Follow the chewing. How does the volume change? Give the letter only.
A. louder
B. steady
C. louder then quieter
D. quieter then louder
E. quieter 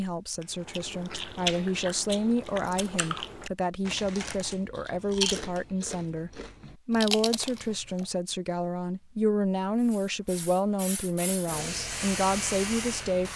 D.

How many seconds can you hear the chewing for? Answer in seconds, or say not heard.
8 s.